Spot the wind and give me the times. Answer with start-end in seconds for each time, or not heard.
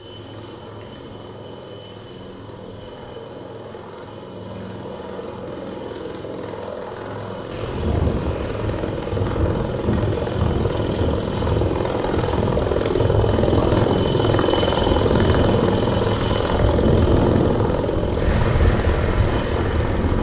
7.5-20.1.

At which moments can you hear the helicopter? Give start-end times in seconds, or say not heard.
0.0-20.1.